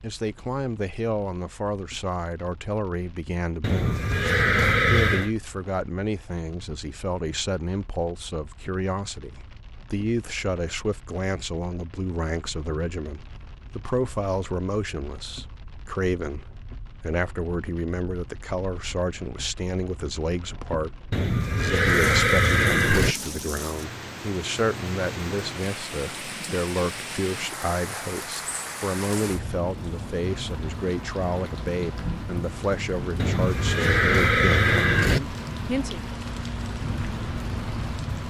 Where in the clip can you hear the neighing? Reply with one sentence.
The neighing can be heard from 3.6 to 5.3 s, from 21.1 to 23.1 s and from 33.1 to 35.2 s.